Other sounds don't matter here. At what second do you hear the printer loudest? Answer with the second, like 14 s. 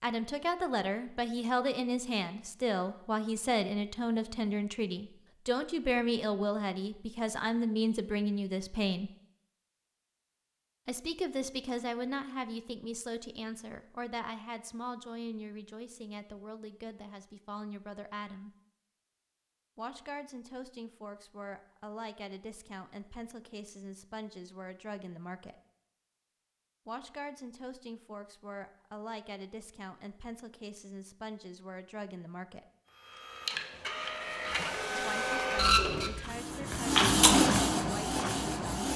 37 s.